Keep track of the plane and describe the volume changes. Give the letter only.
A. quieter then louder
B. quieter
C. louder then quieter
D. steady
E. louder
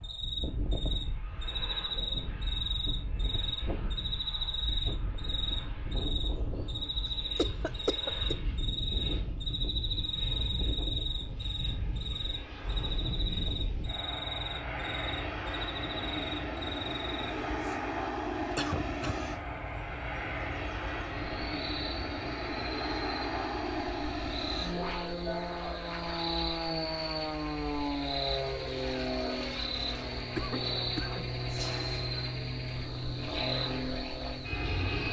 E.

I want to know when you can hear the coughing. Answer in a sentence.
You can hear the coughing from 7.0 to 8.3 s, from 18.6 to 19.3 s and from 30.4 to 32.0 s.